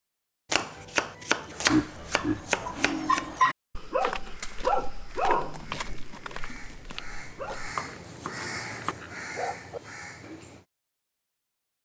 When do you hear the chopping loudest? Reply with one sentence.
The volume of the chopping peaks at 2 seconds.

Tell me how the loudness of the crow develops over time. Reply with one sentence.
The loudness of the crow goes up.